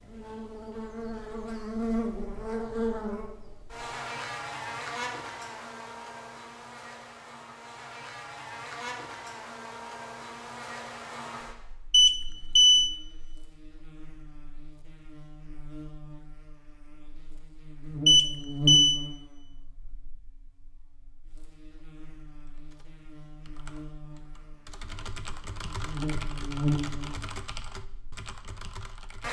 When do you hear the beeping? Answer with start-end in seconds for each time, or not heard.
11.9-12.9, 18.1-19.0.